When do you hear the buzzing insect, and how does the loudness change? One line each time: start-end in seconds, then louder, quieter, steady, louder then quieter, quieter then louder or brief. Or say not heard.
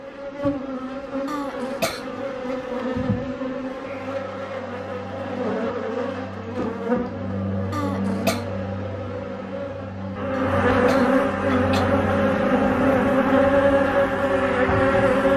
0.0-15.3 louder.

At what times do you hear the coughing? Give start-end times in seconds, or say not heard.
1.2-2.0, 7.7-8.4, 10.3-11.8.